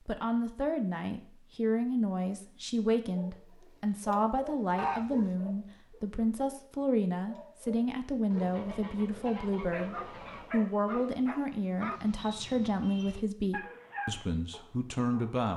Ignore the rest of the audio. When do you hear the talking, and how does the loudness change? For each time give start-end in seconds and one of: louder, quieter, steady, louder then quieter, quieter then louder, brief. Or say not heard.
0.1-15.5 steady.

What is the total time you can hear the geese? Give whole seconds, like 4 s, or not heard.
3 s.